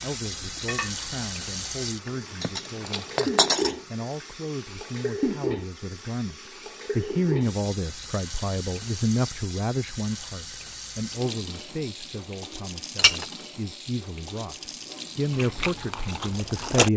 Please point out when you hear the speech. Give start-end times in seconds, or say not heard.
0.0-16.9.